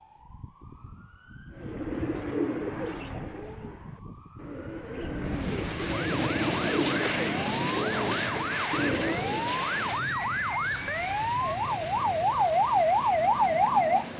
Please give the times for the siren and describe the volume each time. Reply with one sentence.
You can hear the siren from 0.0 to 14.1 s, getting louder.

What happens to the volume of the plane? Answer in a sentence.
The volume of the plane goes down.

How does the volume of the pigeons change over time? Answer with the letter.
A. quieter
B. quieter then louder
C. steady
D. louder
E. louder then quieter
B.